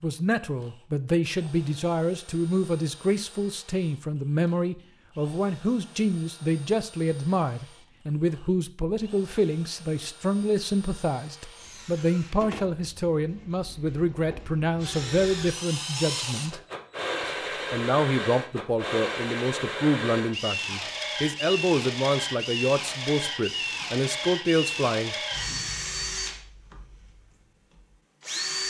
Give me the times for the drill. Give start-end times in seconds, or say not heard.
0.0-28.6.